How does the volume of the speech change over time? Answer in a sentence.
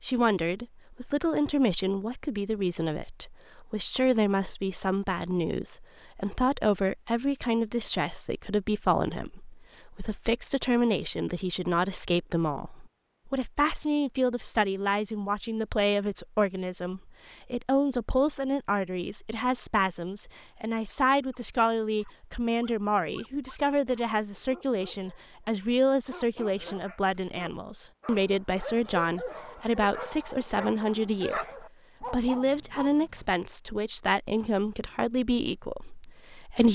The loudness of the speech stays about the same.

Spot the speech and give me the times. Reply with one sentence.
You can hear the speech from 0.0 to 36.6 s.